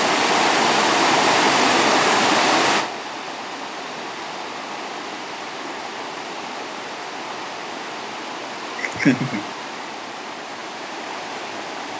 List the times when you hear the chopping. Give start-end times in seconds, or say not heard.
not heard.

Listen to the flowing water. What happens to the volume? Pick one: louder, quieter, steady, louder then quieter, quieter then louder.
quieter.